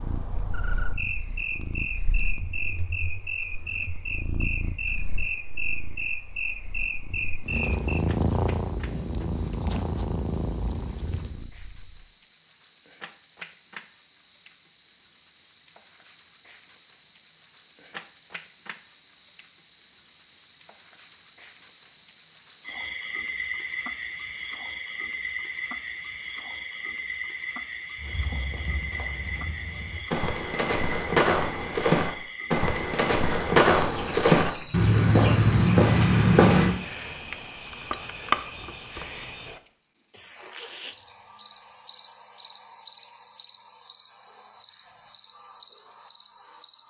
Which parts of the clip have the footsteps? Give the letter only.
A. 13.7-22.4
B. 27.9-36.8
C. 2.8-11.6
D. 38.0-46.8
B.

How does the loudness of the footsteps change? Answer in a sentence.
The volume of the footsteps goes up.